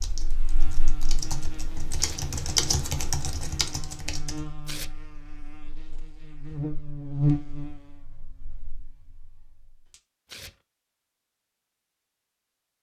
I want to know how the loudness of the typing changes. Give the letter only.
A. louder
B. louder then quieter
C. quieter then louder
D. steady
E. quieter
B.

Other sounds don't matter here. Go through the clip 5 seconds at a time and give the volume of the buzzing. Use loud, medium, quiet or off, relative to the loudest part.
medium, loud, off.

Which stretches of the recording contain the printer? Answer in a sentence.
You can't hear the printer here.